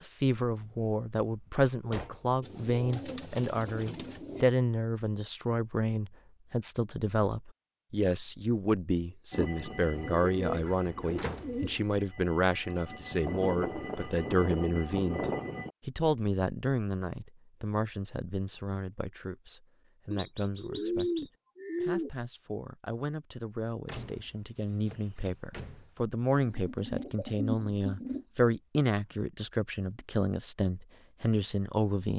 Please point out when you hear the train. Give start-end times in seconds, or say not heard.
9.3-15.8.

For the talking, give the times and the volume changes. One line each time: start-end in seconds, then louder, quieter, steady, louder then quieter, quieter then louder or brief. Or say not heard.
0.0-32.1 quieter then louder.